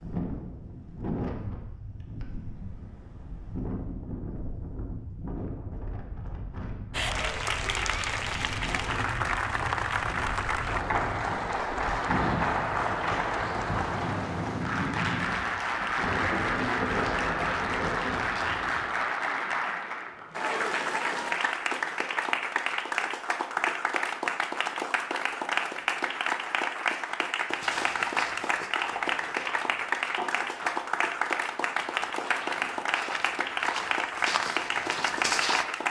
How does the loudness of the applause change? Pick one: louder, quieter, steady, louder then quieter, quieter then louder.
steady.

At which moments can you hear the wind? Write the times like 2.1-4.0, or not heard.
0.0-18.9.